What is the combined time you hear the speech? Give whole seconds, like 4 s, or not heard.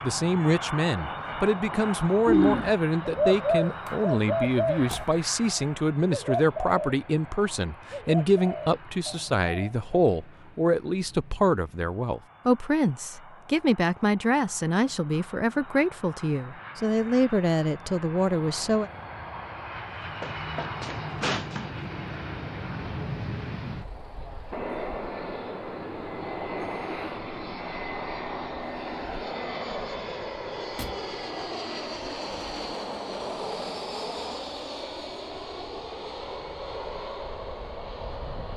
19 s.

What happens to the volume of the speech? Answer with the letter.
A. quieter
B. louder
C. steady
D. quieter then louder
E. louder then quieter
C.